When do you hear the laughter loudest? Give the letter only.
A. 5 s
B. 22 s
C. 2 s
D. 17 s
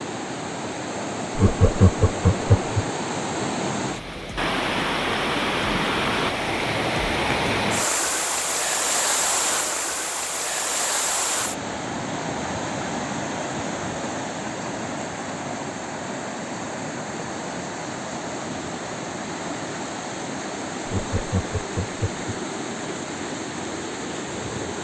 C.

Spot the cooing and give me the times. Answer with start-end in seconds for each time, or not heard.
not heard.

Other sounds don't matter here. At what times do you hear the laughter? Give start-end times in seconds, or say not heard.
1.4-2.9, 20.9-22.2.